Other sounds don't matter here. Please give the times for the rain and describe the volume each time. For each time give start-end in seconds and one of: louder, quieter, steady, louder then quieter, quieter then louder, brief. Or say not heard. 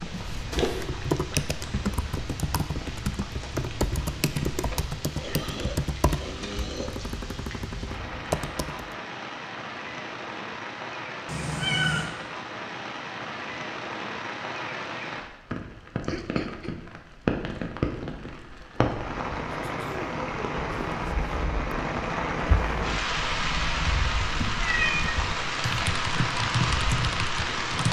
0.0-27.8 louder.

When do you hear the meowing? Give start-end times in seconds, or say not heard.
11.2-12.1, 24.5-25.2.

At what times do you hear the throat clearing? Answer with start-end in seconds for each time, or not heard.
4.7-7.0, 16.1-16.8, 19.5-21.0.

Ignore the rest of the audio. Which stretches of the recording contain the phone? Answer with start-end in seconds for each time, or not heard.
not heard.